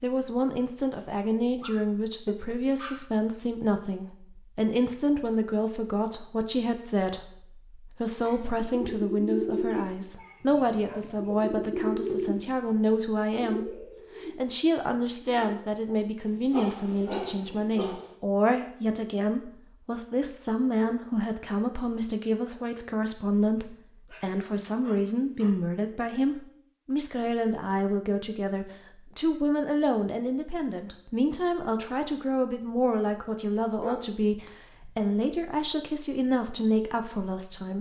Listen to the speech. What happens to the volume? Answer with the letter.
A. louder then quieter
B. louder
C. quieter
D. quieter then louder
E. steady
E.